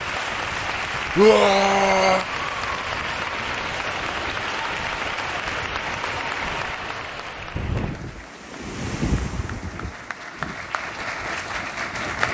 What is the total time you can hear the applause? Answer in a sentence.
You can hear the applause for 12 seconds altogether.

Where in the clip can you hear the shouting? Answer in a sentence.
The shouting can be heard from 1.1 to 2.2 s.